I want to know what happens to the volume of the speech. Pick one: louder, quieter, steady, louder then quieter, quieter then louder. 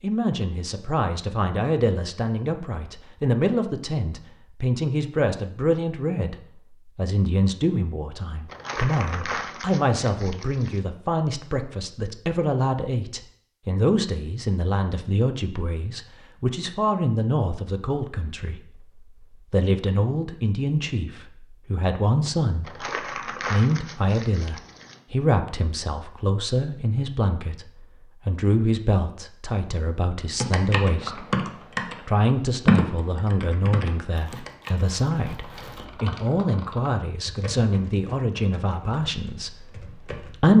steady.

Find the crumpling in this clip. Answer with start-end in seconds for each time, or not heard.
8.4-10.8, 22.6-25.0, 34.1-36.0.